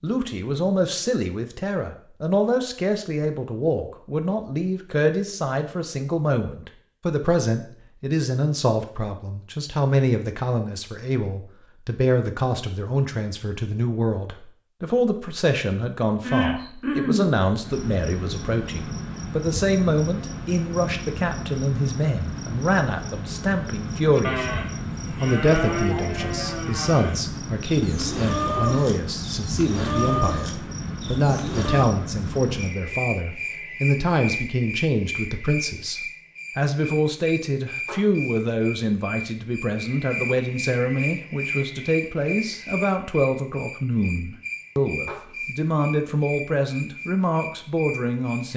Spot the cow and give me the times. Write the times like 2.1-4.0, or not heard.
24.1-31.9.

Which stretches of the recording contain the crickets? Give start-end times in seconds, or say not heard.
16.2-48.5.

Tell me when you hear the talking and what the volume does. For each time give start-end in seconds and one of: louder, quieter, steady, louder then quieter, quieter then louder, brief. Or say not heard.
0.0-48.5 steady.